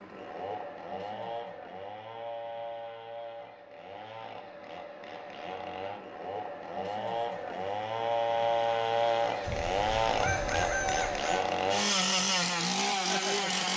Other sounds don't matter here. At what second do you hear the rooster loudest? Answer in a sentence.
The loudest moment of the rooster is at 11 seconds.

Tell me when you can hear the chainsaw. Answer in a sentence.
The chainsaw can be heard from 0.0 to 13.7 s.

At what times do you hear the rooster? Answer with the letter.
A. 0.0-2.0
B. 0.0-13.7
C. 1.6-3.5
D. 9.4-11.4
D.